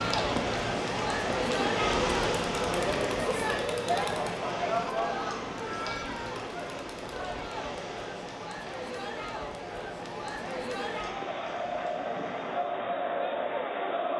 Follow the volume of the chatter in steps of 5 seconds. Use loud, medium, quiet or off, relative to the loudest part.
loud, medium, loud.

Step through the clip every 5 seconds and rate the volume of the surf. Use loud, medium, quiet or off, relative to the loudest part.
loud, medium, quiet.